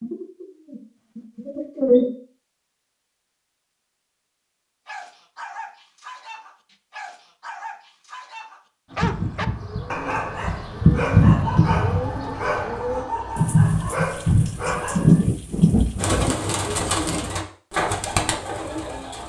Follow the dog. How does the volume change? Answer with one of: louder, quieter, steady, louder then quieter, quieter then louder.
louder.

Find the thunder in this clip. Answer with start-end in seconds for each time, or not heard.
13.3-16.4.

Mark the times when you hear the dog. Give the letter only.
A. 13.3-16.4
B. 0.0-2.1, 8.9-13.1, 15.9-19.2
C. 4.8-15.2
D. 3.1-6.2
C.